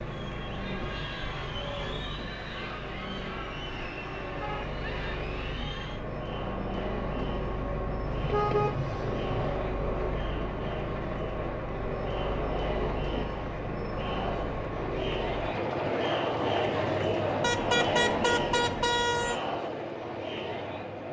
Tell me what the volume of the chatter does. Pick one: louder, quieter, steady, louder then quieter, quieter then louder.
louder.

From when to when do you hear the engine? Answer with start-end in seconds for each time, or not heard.
0.0-21.0.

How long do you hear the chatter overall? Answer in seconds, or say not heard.
21 s.